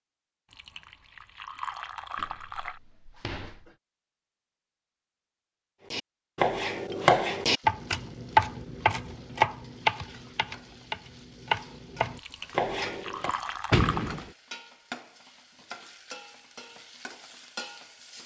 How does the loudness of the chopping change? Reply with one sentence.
The loudness of the chopping goes down.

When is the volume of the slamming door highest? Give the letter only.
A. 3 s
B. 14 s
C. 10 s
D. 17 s
B.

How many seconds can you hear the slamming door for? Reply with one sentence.
The slamming door can be heard for 3 seconds in total.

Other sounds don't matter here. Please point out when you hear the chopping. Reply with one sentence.
You can hear the chopping from 5.9 to 13.3 s.